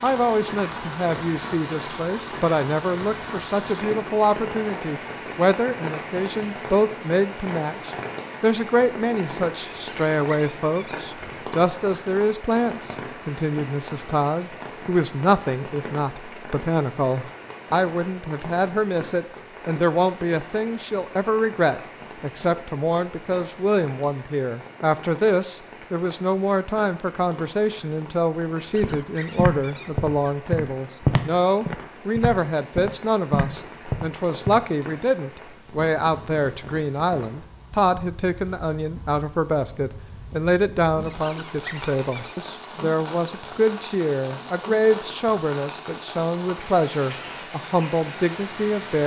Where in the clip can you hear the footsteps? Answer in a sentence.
The footsteps can be heard from 28.8 to 34.6 s.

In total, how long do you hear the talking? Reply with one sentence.
You can hear the talking for 49 seconds altogether.